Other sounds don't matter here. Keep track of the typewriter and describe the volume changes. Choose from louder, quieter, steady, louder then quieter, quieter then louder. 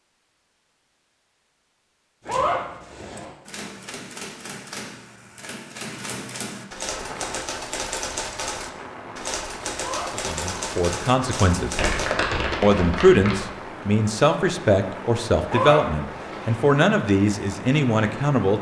louder.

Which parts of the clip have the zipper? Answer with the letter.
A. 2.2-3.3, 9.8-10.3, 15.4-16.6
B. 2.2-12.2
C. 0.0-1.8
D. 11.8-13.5
A.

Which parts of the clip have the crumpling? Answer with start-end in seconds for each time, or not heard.
11.8-13.5.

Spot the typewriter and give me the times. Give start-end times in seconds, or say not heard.
2.2-12.2.